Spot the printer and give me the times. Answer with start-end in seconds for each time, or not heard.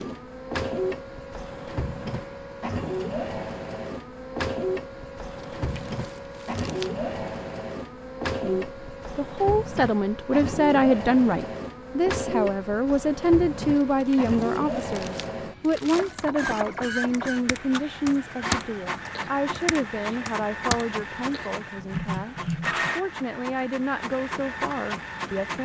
0.0-25.6.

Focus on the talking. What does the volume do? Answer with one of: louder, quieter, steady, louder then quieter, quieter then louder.
quieter.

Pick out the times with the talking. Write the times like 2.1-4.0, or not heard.
8.4-25.6.